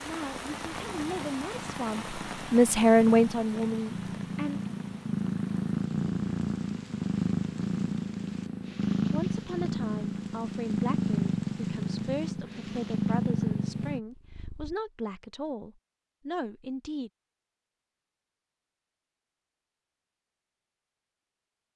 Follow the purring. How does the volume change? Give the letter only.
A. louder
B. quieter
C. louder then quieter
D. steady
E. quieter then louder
A.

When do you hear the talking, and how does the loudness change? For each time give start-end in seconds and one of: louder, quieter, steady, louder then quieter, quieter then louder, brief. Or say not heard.
0.1-4.6 louder then quieter
9.1-17.1 steady.